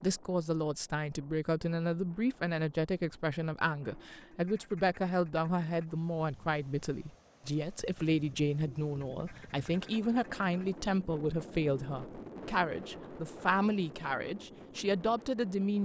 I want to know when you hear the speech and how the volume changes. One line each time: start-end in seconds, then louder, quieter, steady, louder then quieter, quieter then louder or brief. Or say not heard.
0.0-15.7 steady.